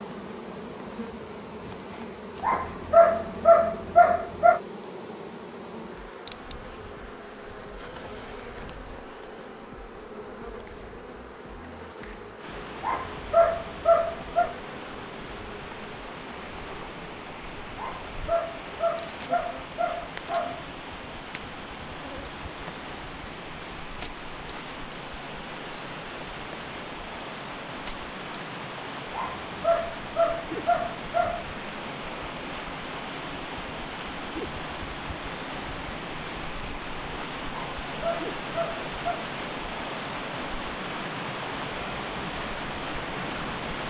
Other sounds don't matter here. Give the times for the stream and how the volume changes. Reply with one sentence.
The stream can be heard from 12.3 to 43.8 s, getting louder.